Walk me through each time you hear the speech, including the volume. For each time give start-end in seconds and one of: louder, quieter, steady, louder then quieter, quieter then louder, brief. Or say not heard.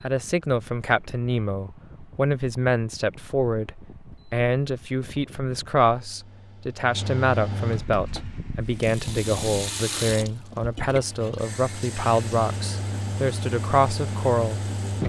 0.0-15.0 steady.